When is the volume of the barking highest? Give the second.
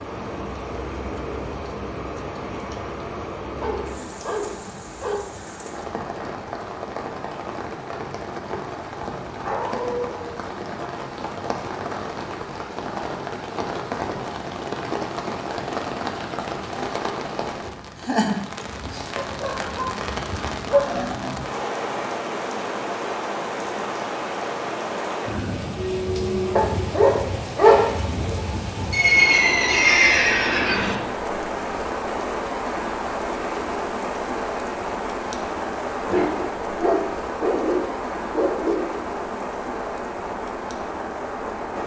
28 s.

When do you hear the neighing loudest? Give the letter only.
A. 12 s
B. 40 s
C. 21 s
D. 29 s
D.